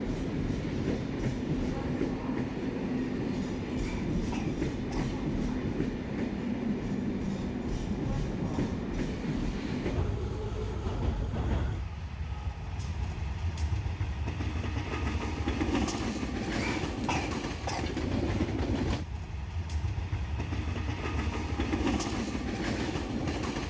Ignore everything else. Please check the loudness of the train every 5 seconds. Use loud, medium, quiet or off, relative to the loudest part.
loud, loud, medium, loud, loud.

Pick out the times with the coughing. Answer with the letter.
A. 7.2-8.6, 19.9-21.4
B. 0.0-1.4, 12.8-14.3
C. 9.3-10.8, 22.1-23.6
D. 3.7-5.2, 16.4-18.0
D.